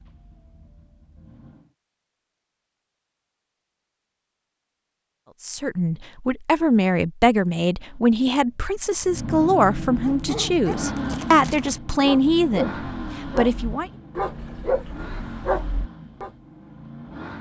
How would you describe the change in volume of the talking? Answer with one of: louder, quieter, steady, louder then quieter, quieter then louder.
steady.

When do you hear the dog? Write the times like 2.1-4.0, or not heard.
10.0-16.3.